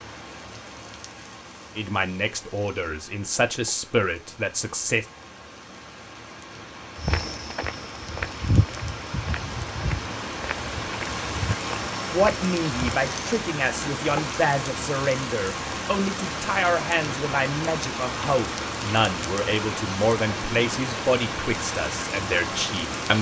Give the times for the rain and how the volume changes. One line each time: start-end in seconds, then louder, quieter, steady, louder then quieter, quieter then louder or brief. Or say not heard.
0.0-23.1 louder.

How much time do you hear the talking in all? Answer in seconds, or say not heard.
14 s.